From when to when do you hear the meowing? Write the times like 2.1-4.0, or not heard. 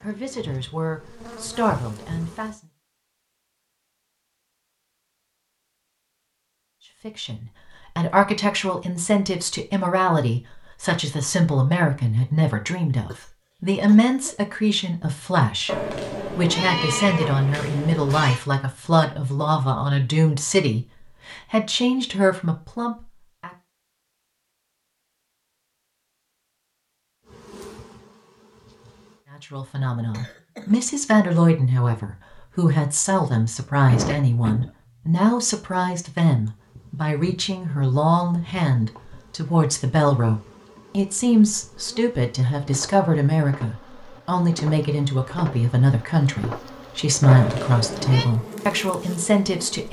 15.7-18.4, 47.2-48.2.